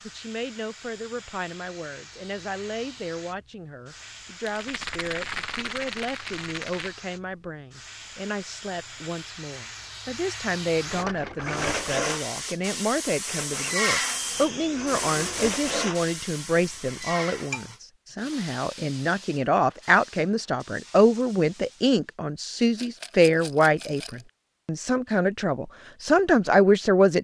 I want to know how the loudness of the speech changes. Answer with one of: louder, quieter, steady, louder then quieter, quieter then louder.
louder.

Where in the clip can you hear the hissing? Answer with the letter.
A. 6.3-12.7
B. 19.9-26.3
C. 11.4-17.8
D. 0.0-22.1
D.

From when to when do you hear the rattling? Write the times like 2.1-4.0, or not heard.
4.5-7.0, 10.8-11.9, 22.8-24.2.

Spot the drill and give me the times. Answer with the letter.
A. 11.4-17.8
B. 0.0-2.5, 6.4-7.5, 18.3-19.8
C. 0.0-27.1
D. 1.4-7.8
A.